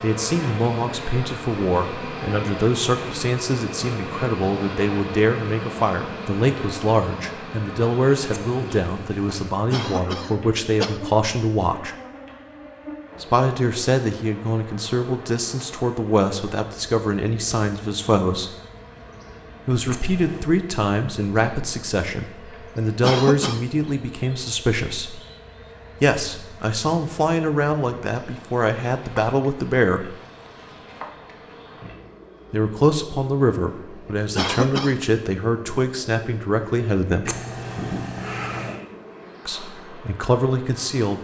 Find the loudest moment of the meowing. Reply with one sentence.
The volume of the meowing peaks at 38 seconds.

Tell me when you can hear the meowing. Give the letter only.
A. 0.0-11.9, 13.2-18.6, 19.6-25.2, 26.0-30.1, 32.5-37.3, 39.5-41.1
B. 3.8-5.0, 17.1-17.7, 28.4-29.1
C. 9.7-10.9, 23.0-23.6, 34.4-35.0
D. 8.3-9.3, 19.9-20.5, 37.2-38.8
D.